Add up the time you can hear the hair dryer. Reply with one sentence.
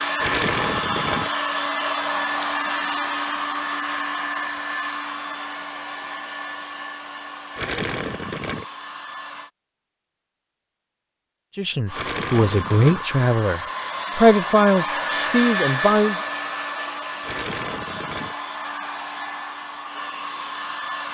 You can hear the hair dryer for 19 seconds altogether.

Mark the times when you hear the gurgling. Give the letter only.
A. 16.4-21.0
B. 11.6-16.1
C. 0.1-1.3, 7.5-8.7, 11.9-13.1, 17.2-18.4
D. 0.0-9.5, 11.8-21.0
C.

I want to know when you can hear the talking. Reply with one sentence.
You can hear the talking from 11.6 to 16.1 s.